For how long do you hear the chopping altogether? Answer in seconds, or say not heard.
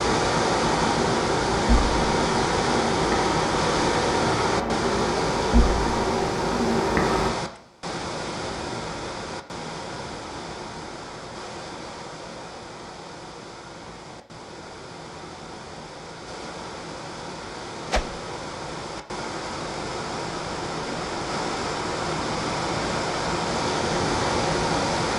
not heard.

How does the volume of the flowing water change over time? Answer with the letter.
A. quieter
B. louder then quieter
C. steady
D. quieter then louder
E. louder
D.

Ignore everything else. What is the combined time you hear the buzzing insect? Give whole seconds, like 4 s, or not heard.
7 s.